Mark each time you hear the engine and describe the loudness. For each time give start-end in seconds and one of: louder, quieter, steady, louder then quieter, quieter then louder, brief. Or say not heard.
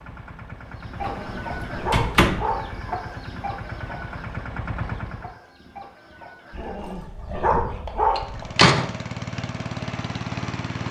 0.0-5.4 louder
8.2-10.8 brief.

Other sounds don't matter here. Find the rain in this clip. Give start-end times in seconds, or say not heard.
not heard.